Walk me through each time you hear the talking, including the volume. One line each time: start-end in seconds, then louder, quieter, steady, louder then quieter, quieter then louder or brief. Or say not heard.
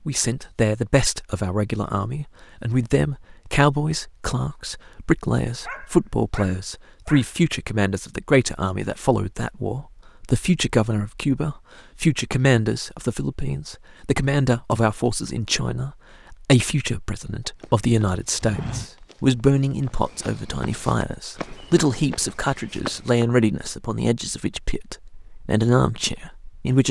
0.1-26.8 steady.